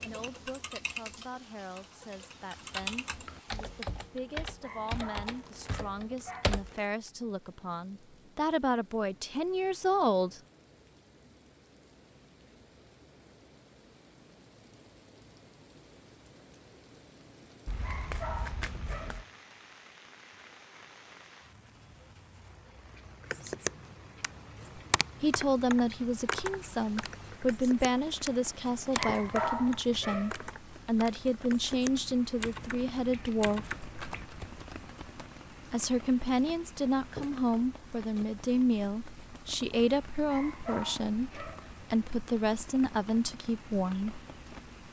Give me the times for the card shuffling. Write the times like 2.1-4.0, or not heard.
5.2-6.9, 17.6-19.2, 33.8-35.4.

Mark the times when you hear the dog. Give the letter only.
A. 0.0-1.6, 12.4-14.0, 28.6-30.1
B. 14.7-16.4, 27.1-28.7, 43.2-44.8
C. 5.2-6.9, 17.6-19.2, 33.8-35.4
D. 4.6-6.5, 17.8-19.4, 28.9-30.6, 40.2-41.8
D.